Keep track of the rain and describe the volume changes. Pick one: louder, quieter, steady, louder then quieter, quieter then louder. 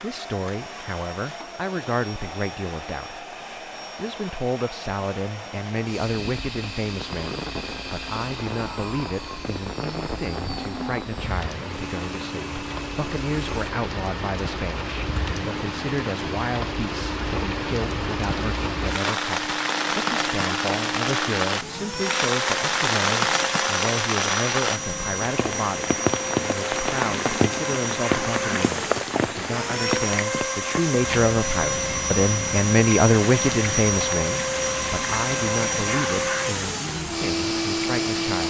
louder then quieter.